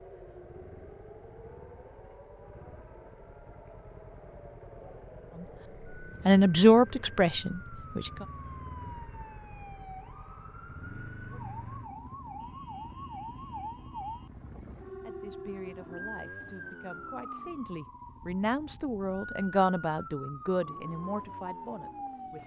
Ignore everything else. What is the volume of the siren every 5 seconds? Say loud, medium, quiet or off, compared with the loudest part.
medium, medium, loud, loud, loud.